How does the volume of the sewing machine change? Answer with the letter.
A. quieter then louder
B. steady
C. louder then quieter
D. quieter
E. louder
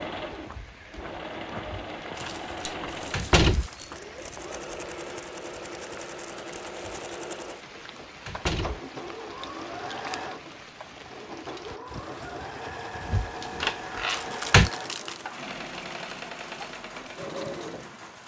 B.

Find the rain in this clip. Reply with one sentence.
You can hear the rain from 0.0 to 18.2 s.